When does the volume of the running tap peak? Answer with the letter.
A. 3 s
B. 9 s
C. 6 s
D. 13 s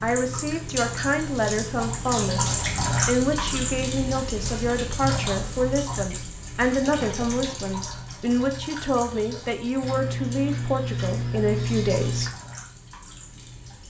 A.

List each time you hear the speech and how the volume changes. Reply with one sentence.
The speech can be heard briefly from 0.0 to 2.5 s; and from 3.0 to 12.3 s, at a steady volume.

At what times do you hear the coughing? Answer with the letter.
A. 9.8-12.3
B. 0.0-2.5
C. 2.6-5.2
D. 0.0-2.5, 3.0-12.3
A.